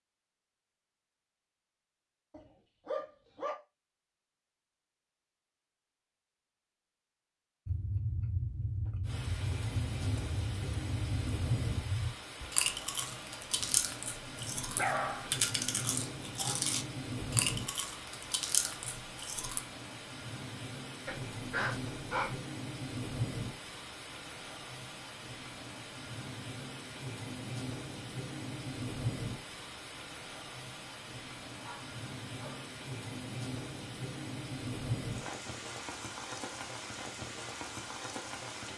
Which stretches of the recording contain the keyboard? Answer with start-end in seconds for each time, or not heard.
not heard.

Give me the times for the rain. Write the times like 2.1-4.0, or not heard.
9.1-38.7.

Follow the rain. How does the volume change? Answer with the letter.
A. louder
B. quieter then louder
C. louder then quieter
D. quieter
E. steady
E.